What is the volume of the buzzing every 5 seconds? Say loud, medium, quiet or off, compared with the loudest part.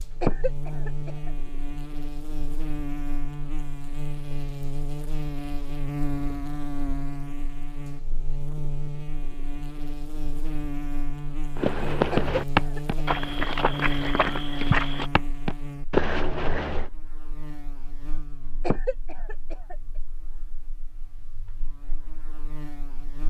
loud, loud, loud, medium, quiet.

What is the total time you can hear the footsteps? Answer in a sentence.
You can hear the footsteps for 5 seconds altogether.